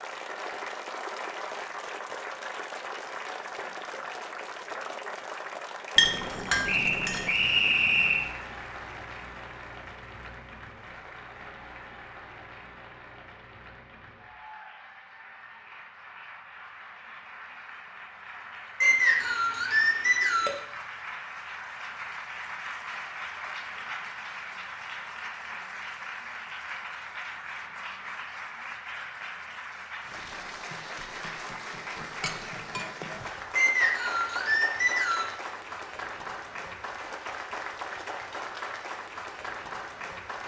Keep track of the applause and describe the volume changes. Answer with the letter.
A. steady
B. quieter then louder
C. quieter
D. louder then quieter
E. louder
B.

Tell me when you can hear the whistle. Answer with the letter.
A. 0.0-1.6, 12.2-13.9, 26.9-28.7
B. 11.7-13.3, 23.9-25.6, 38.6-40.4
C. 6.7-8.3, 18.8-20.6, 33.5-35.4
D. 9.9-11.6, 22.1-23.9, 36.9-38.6
C.